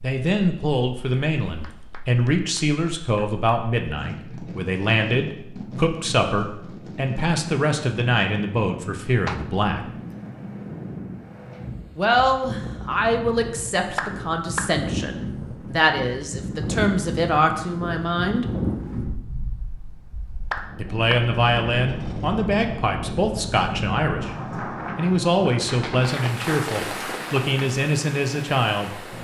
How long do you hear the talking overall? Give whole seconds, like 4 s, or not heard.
24 s.